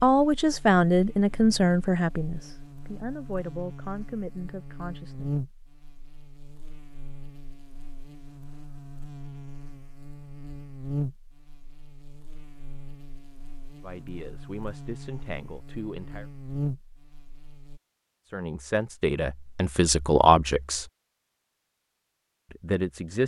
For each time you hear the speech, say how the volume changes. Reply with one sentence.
The speech can be heard from 0.0 to 5.3 s, getting quieter; briefly from 13.8 to 16.2 s; briefly from 18.2 to 20.9 s; and briefly from 22.5 to 23.2 s.